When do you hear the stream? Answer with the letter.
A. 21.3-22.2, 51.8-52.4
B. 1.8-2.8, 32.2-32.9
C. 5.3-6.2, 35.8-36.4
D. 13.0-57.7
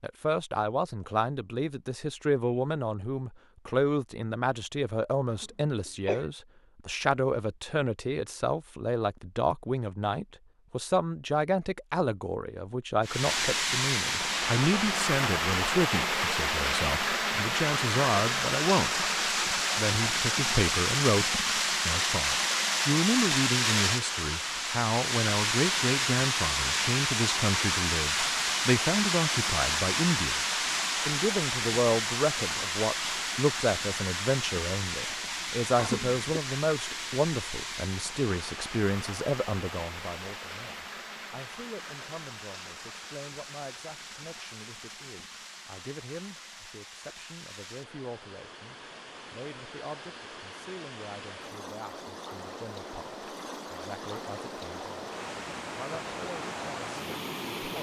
D.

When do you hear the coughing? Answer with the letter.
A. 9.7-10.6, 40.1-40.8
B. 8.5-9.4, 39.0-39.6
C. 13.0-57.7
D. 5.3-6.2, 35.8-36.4
D.